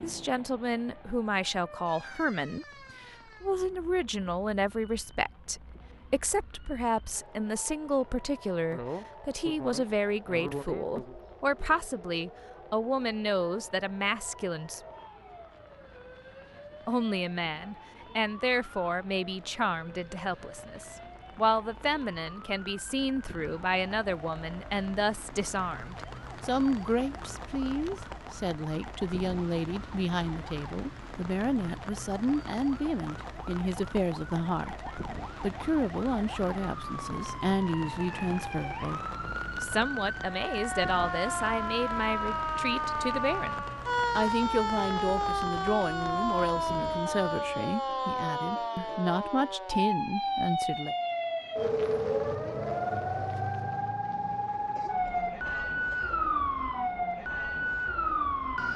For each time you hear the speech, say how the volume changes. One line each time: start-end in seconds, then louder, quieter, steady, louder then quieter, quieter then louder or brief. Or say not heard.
0.0-14.8 steady
16.9-51.0 steady.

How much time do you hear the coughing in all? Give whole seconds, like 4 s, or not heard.
4 s.